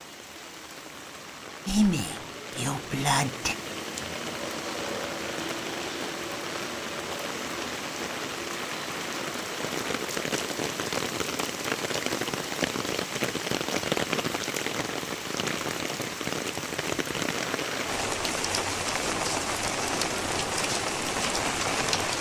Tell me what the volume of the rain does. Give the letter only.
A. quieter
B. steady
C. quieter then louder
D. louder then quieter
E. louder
E.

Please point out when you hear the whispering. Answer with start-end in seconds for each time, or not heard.
1.6-3.5.